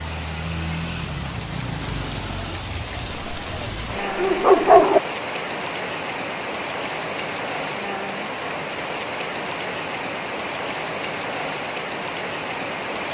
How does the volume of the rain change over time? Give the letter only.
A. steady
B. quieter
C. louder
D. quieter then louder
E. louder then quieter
A.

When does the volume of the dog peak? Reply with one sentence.
The volume of the dog peaks at 5 seconds.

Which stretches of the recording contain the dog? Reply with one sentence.
You can hear the dog from 3.1 to 5.0 s.